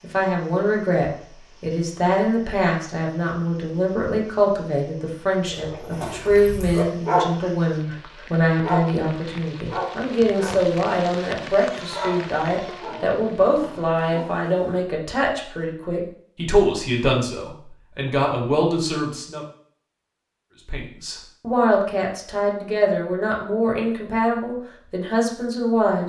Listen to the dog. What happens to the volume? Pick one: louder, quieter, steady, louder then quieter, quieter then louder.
louder then quieter.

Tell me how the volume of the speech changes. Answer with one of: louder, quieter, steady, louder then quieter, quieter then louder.
steady.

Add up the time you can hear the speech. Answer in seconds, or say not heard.
25 s.